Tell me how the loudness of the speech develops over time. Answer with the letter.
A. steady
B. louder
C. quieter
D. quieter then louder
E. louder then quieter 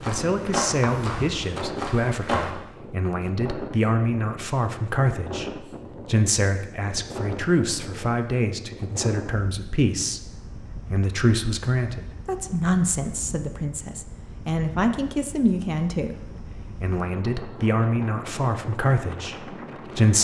A.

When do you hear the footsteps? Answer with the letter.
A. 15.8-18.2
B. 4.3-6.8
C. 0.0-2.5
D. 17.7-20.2
C.